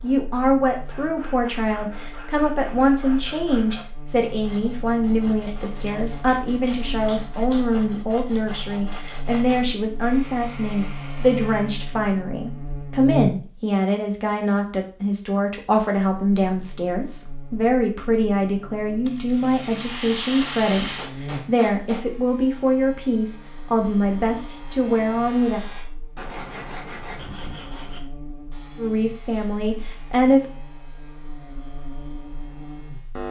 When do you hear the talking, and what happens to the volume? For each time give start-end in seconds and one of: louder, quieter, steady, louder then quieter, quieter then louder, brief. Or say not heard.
0.0-25.6 steady
28.8-30.5 brief.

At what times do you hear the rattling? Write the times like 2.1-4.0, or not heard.
19.1-21.1.